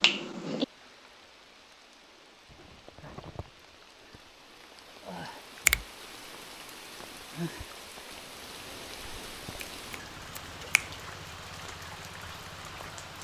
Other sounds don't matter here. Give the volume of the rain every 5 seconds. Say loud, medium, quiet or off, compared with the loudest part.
medium, loud, loud.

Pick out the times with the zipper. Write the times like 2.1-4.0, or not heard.
2.5-3.6.